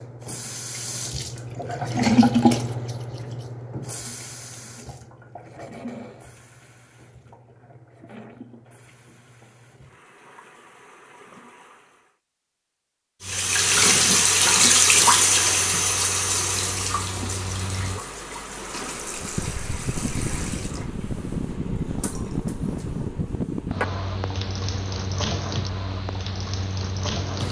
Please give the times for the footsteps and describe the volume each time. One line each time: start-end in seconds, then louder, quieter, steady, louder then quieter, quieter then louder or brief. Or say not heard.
not heard.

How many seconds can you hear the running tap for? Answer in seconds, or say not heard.
26 s.